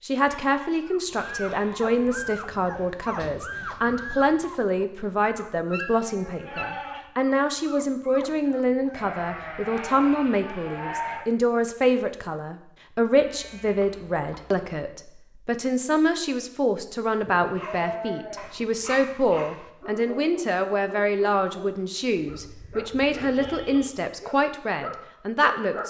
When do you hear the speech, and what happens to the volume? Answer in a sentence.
You can hear the speech from 0.0 to 25.8 s, at a steady volume.